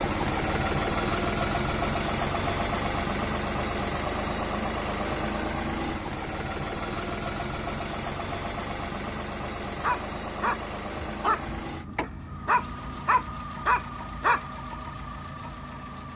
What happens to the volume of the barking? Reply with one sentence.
The volume of the barking goes down, then up.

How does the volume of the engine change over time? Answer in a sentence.
The loudness of the engine goes down.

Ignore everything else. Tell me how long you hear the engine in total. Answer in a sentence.
You can hear the engine for 16 seconds altogether.